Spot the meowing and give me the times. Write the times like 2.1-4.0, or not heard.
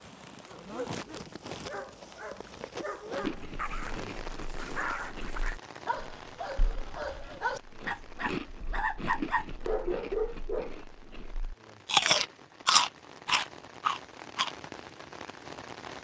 not heard.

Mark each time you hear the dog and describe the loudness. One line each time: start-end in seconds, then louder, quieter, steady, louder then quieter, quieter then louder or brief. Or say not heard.
0.5-10.7 louder.